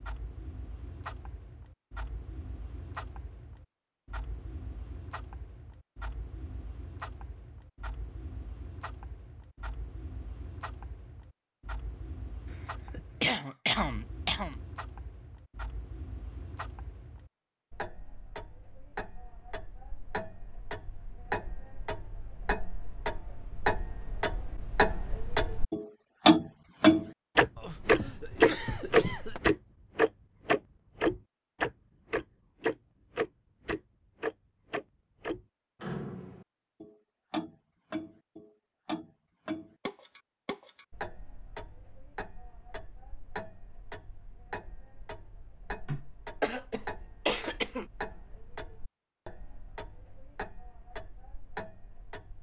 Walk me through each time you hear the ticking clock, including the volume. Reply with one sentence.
You can hear the ticking clock from 0.0 to 52.3 s, getting louder then quieter.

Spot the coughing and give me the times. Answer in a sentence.
The coughing can be heard from 12.5 to 14.6 s, from 27.6 to 29.4 s and from 45.9 to 47.9 s.